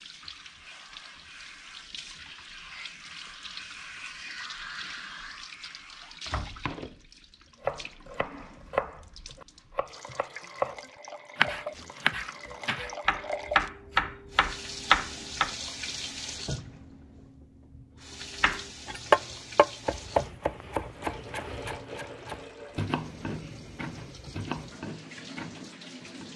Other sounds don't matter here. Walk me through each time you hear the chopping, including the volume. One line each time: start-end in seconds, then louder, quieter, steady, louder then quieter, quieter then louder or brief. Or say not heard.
7.6-15.5 louder
18.4-26.3 quieter.